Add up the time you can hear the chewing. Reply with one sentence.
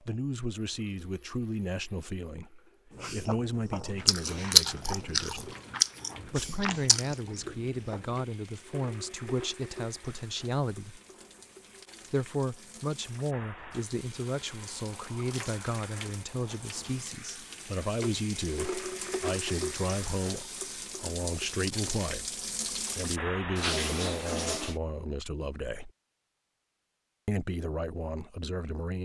You can hear the chewing for 5 seconds altogether.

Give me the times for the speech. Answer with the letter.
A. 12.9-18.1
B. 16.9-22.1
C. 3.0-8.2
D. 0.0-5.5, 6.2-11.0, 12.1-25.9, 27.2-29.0
D.